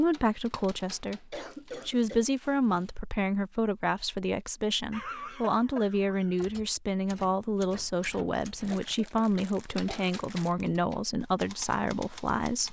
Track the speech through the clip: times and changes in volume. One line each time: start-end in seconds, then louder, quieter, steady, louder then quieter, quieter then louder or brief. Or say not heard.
0.0-12.6 steady.